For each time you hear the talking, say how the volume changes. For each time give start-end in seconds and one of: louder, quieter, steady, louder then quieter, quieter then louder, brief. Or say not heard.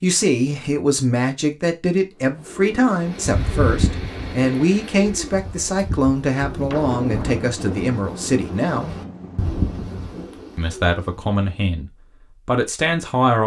0.0-8.9 steady
10.6-13.4 brief.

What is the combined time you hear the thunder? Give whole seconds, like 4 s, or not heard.
4 s.